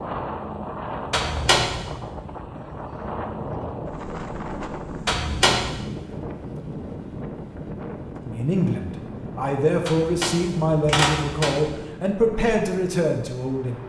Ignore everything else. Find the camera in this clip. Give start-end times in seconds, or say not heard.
1.1-1.9, 5.0-5.8, 9.8-11.7.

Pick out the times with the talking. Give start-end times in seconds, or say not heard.
8.2-13.8.